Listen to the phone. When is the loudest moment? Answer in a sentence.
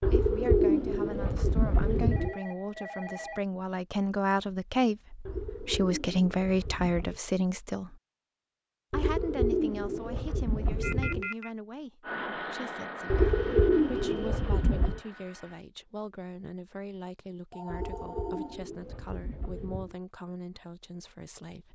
The loudest moment of the phone is at 11 seconds.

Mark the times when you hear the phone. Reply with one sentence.
You can hear the phone from 2.1 to 3.5 s, from 10.8 to 11.5 s and from 17.5 to 18.6 s.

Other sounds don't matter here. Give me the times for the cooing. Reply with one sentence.
You can hear the cooing from 0.0 to 2.4 s, from 5.2 to 7.2 s, from 8.9 to 11.3 s, from 13.1 to 15.0 s and from 17.7 to 19.9 s.